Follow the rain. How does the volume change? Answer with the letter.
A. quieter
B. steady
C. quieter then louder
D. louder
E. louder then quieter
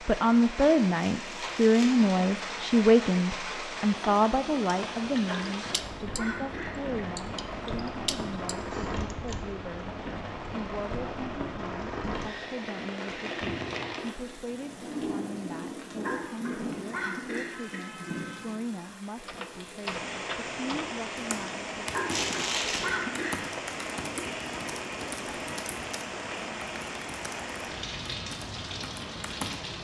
B.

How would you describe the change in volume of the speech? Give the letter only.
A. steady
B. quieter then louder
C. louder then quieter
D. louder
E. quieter
E.